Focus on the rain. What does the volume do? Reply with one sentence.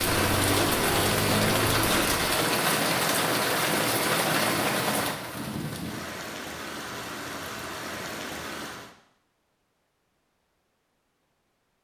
The loudness of the rain goes down.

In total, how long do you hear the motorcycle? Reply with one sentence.
You can hear the motorcycle for 2 seconds altogether.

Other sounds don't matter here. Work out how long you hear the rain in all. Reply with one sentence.
You can hear the rain for 9 seconds altogether.